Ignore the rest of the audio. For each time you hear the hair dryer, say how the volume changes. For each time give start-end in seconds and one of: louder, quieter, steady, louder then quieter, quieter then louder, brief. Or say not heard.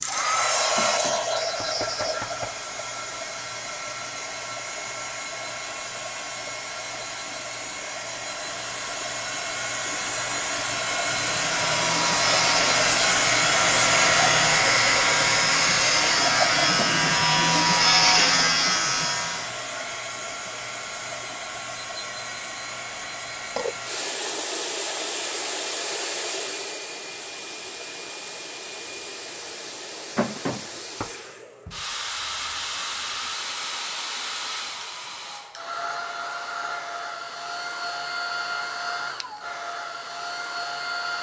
0.0-41.1 louder then quieter.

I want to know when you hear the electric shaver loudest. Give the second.
18 s.